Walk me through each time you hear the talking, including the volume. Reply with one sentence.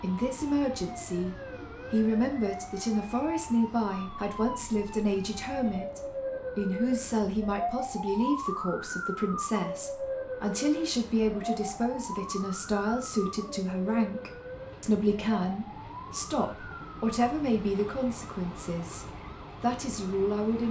The talking can be heard from 0.0 to 20.6 s, at a steady volume.